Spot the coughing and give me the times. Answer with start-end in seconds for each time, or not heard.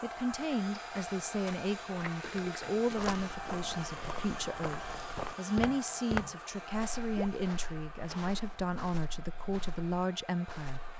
not heard.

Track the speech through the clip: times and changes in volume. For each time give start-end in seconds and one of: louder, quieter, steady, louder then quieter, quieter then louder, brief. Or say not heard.
0.0-10.8 steady.